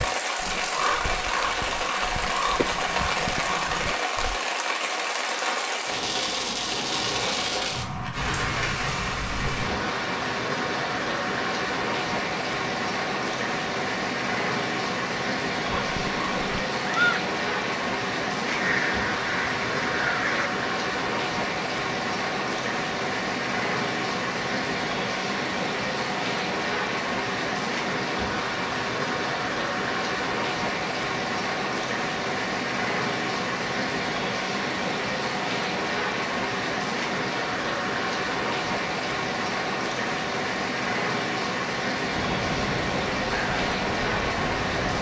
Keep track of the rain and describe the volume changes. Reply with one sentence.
The loudness of the rain stays about the same.